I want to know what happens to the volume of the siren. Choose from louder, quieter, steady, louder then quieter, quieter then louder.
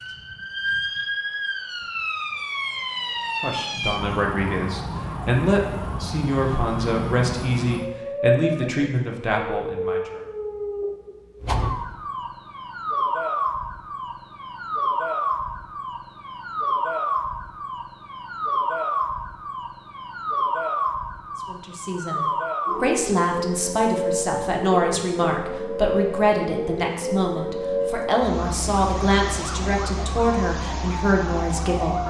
steady.